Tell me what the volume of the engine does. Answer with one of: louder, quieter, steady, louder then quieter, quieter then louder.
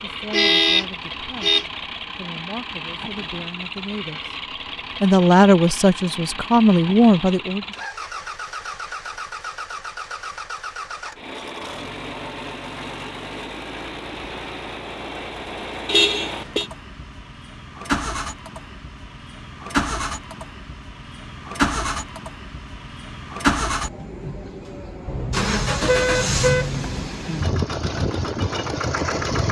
louder.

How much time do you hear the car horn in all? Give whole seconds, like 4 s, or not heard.
4 s.